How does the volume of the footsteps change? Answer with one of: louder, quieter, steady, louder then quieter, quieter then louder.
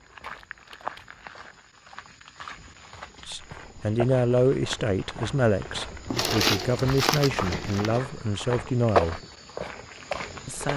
louder.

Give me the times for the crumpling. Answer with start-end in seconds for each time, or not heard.
0.2-1.2, 6.0-8.0.